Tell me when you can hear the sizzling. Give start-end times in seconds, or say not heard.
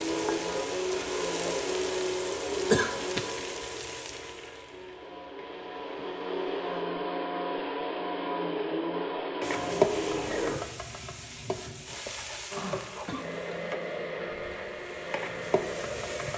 0.0-6.8, 9.4-16.3.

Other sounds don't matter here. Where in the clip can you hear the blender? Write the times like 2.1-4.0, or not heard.
0.0-10.6, 12.5-16.3.